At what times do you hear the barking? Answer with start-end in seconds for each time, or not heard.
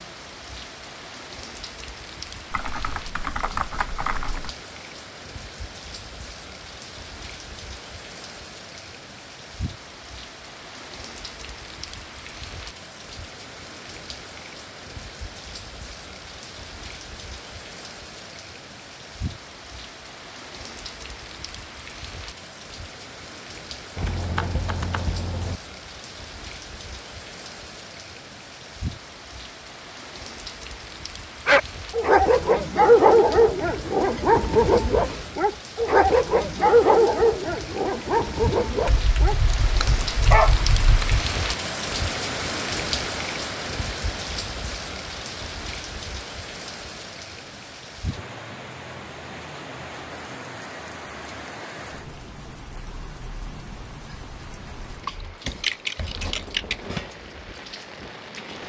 31.4-41.0.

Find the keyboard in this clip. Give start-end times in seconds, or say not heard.
2.5-4.5, 23.9-25.6, 38.9-41.2, 55.0-56.8.